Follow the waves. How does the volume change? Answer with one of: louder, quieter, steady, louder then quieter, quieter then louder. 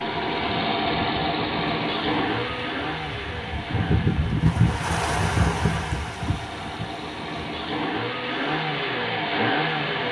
louder then quieter.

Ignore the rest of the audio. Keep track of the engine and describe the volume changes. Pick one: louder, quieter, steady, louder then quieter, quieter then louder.
quieter then louder.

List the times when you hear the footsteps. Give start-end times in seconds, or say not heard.
not heard.